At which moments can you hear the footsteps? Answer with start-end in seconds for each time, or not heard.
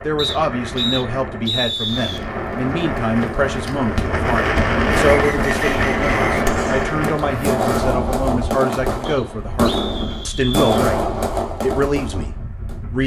not heard.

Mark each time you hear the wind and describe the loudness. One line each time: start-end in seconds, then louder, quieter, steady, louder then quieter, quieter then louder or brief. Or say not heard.
0.0-13.0 louder then quieter.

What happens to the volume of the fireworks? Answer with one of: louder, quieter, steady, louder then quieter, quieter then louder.
louder.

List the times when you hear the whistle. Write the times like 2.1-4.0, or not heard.
0.1-2.2, 5.1-6.3, 9.1-10.8.